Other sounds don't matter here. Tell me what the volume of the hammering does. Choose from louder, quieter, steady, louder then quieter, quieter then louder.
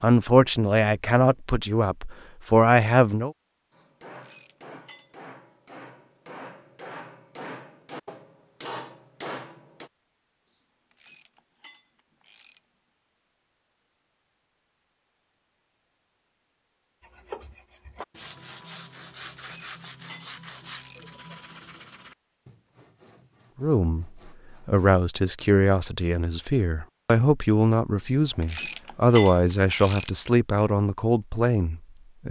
louder.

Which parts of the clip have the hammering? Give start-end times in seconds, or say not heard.
3.7-9.9.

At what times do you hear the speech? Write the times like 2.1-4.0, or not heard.
0.0-3.4, 23.6-32.2.